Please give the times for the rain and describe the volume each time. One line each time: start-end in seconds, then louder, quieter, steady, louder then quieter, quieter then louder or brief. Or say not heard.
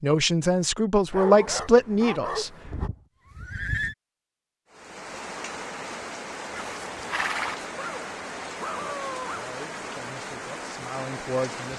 4.7-11.7 steady.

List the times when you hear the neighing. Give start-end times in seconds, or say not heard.
2.6-4.0, 6.5-7.5.